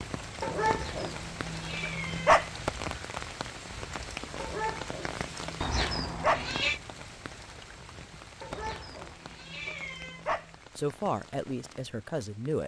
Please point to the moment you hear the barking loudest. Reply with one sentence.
The volume of the barking peaks at 2 seconds.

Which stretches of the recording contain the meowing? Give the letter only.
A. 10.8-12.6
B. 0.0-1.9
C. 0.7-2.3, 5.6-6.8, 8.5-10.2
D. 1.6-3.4
C.